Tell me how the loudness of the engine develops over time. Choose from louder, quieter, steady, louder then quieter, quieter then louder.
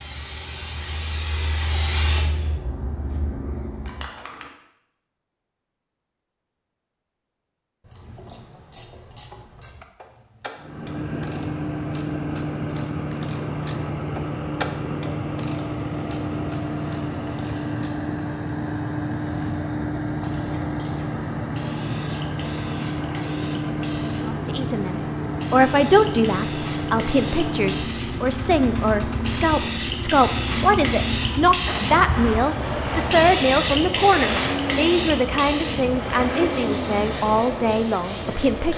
steady.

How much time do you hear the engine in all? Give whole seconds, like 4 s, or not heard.
28 s.